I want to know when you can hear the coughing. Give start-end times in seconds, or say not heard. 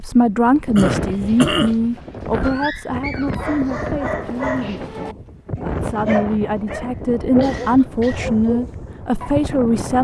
0.8-1.8, 7.4-8.3.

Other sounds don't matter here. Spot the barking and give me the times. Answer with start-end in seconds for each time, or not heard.
0.9-9.4.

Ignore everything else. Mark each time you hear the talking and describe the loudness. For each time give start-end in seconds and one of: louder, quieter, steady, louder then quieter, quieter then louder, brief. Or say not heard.
0.0-10.0 quieter then louder.